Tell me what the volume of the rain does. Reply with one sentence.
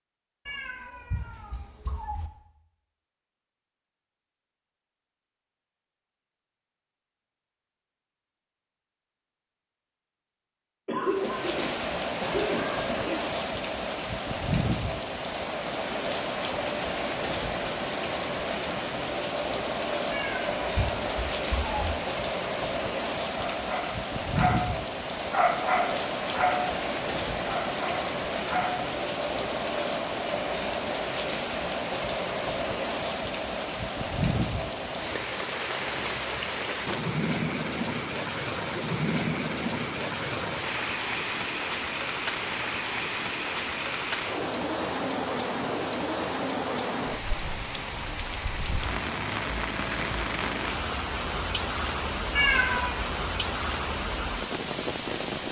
The volume of the rain stays about the same.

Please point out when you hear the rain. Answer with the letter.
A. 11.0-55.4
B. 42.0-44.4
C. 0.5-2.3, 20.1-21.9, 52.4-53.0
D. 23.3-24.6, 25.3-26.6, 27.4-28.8
A.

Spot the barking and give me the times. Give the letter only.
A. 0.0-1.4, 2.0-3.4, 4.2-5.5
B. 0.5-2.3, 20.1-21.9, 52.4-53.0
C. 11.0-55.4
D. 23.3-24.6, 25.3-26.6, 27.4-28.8
D.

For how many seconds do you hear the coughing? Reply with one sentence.
The coughing can be heard for 2 seconds in total.